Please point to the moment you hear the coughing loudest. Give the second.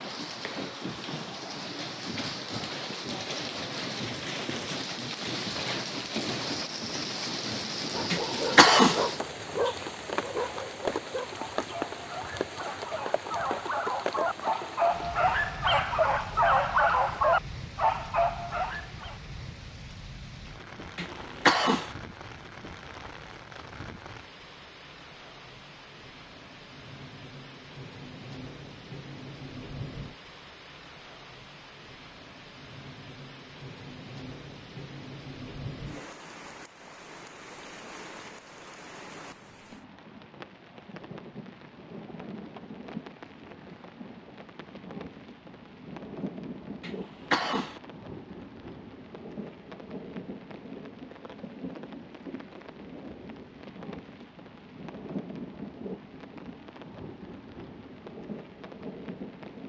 9 s.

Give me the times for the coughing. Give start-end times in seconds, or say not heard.
8.1-9.1, 20.9-21.9, 46.8-47.8.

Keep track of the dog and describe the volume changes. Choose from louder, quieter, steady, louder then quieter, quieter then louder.
quieter then louder.